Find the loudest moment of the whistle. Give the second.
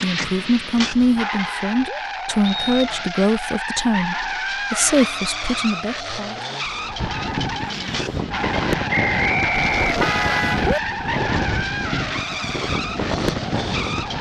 9 s.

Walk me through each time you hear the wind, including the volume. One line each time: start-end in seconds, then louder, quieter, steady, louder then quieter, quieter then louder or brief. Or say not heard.
7.0-14.1 steady.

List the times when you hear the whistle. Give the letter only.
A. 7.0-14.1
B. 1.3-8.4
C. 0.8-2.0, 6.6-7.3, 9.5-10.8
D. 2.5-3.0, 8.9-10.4
D.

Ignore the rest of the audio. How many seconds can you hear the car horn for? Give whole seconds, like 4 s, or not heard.
3 s.